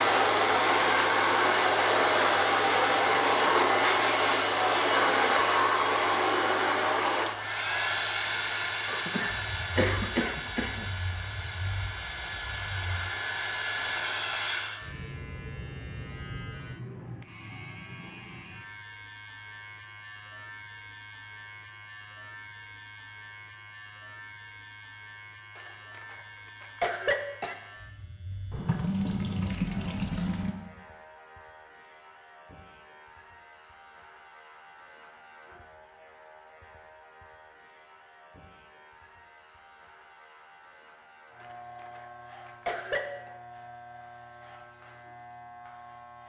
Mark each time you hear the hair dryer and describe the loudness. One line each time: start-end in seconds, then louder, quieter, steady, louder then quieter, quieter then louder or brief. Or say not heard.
0.0-14.8 quieter.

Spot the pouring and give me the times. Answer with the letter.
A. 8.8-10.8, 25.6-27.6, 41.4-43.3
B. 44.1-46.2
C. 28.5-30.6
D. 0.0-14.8
C.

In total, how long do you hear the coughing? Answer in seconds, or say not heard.
6 s.